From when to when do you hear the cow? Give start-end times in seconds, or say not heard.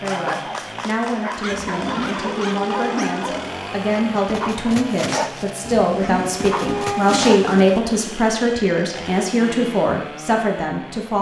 1.5-3.5, 5.6-7.4.